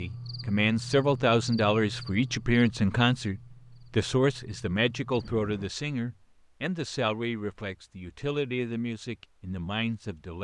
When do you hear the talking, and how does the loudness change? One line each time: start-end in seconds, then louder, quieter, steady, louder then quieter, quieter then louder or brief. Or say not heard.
0.0-10.3 quieter.